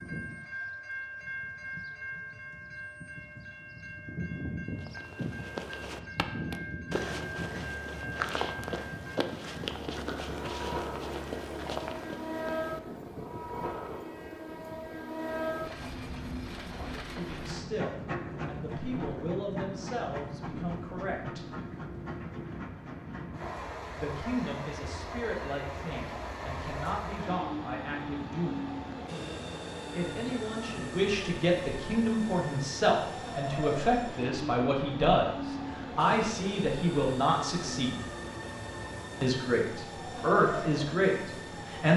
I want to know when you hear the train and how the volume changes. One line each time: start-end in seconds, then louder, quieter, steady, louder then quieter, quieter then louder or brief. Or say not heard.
0.0-41.9 steady.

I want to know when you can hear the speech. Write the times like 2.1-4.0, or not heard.
16.6-21.4, 23.9-28.7, 29.9-38.0, 39.2-41.9.